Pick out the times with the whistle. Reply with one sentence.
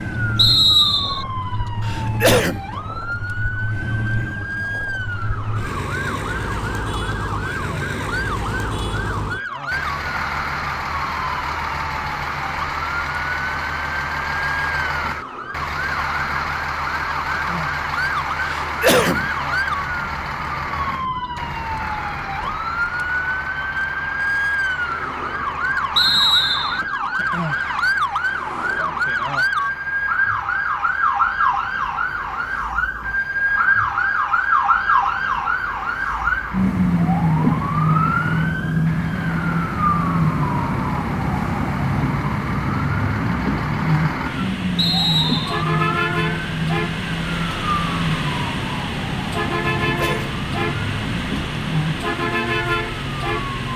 The whistle can be heard from 0.3 to 1.2 s, from 25.9 to 26.8 s and from 44.8 to 45.6 s.